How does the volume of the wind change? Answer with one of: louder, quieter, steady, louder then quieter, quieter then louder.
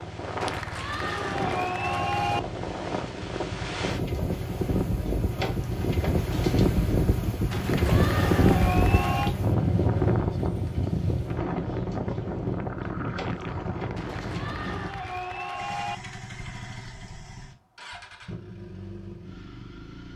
louder then quieter.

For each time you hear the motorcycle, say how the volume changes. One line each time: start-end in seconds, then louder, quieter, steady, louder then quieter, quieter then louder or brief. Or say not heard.
0.0-20.1 louder then quieter.